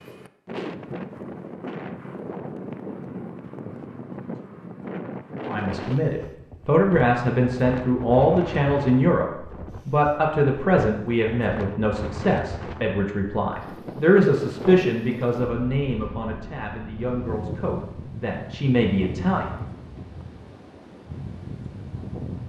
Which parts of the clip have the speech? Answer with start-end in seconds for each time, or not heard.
5.5-19.4.